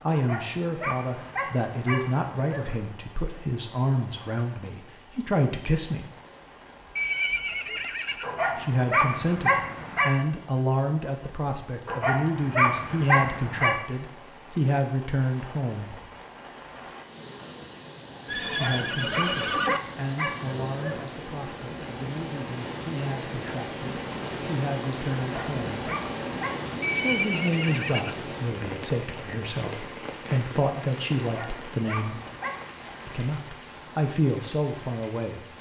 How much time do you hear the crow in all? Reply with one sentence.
You can't hear the crow here.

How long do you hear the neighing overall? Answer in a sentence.
You can hear the neighing for 4 seconds altogether.